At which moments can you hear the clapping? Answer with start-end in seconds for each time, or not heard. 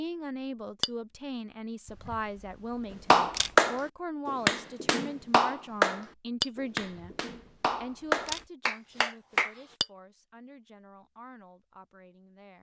3.1-9.5.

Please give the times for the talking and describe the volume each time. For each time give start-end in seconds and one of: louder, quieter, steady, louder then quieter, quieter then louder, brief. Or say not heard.
0.0-7.2 steady
7.8-12.5 quieter.